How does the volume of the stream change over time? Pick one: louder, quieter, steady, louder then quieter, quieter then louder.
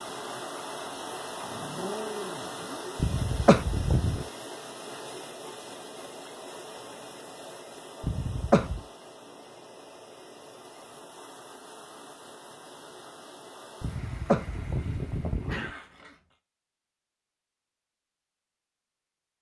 quieter.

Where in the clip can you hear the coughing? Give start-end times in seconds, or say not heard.
3.0-4.2, 8.0-8.8, 13.8-15.7.